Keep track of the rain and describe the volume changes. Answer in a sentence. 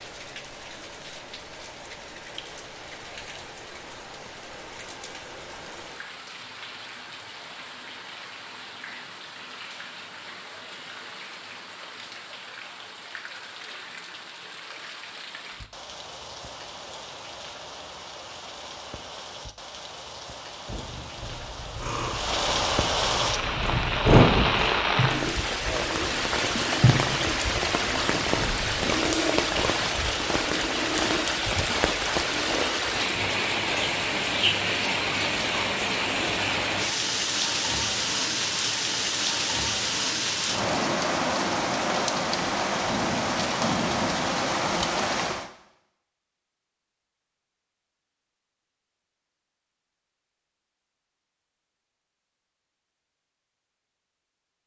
The loudness of the rain goes up.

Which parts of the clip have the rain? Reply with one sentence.
You can hear the rain from 0.0 to 45.5 s.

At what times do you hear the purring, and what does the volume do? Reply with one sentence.
The purring can be heard from 20.6 to 32.8 s, getting louder then quieter.